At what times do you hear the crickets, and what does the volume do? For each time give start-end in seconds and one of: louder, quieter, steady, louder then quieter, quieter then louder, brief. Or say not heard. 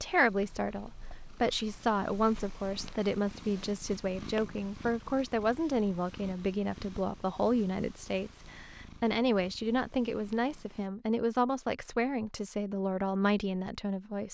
not heard.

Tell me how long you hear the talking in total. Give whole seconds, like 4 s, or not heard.
14 s.